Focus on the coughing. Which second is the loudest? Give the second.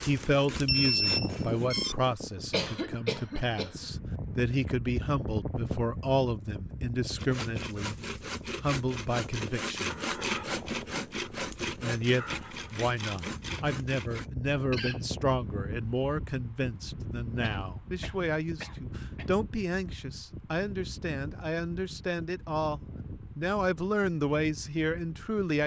3 s.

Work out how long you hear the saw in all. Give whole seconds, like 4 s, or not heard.
9 s.